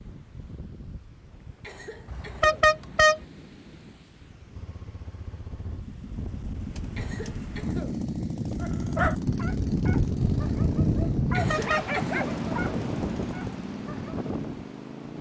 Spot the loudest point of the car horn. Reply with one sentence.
The volume of the car horn peaks at 3 seconds.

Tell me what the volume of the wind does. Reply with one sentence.
The volume of the wind goes up, then down.